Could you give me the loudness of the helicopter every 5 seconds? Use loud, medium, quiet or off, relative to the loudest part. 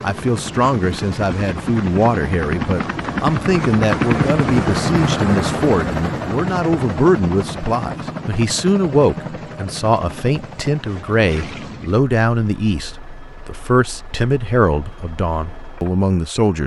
loud, loud, quiet, quiet.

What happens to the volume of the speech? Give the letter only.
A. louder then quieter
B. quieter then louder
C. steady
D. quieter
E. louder
C.